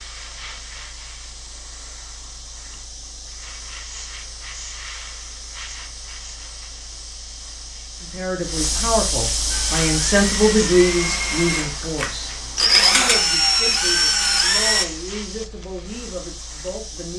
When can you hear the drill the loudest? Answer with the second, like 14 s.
13 s.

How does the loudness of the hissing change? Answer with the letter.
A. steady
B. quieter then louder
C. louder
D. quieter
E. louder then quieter
E.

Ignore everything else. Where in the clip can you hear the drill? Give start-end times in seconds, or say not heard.
9.4-14.8.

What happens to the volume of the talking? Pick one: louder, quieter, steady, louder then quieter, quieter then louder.
louder then quieter.